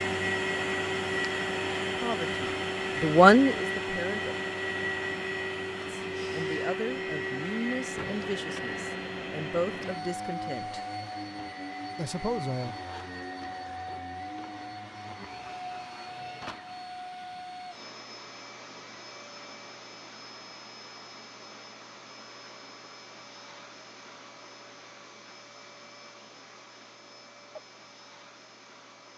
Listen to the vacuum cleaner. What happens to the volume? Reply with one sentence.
The volume of the vacuum cleaner goes down.